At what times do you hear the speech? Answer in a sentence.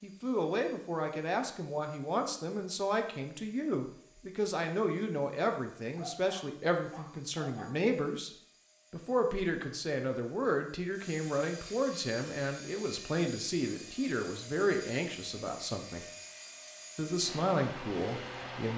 You can hear the speech from 0.0 to 8.3 s, from 8.9 to 16.1 s and from 16.9 to 18.7 s.